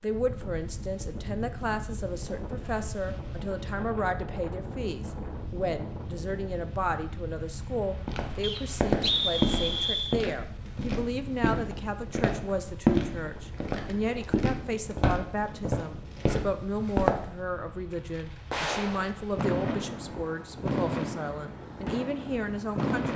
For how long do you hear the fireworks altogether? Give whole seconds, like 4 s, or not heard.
5 s.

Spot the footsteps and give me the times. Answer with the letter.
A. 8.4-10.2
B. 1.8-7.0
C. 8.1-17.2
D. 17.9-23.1
C.